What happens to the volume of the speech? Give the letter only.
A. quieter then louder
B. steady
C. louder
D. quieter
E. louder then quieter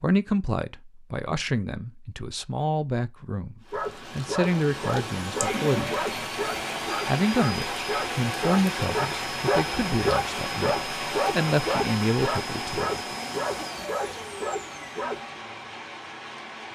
B.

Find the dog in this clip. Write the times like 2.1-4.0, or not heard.
3.7-15.2.